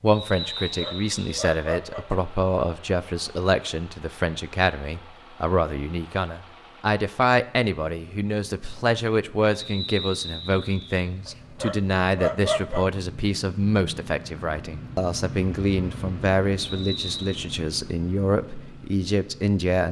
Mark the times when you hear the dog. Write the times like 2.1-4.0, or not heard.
0.5-2.0, 11.2-12.8.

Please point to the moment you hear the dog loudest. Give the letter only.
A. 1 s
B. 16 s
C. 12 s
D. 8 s
C.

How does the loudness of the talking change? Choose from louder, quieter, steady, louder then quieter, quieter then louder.
steady.